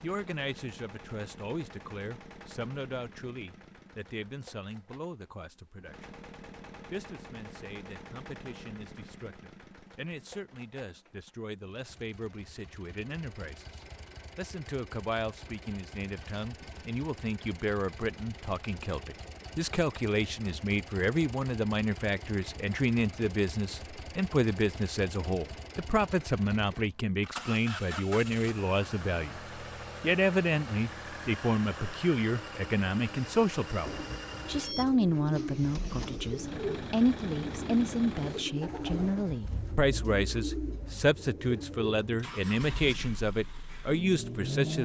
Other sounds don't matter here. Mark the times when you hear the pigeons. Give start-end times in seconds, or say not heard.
33.9-42.2.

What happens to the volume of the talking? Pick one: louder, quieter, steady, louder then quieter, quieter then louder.
louder.